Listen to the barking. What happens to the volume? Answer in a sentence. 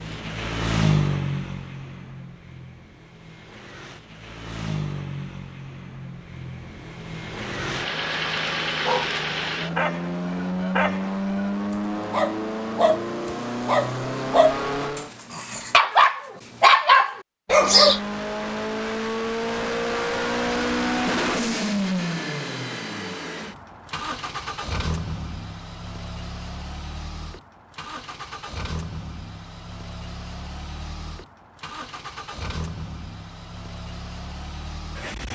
The loudness of the barking goes up.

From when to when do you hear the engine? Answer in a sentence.
You can hear the engine from 0.0 to 15.1 s and from 17.5 to 35.3 s.